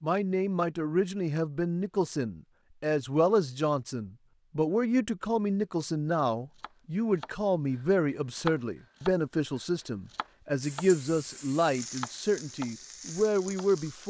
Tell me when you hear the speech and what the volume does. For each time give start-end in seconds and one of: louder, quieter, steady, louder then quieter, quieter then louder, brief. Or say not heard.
0.0-14.0 steady.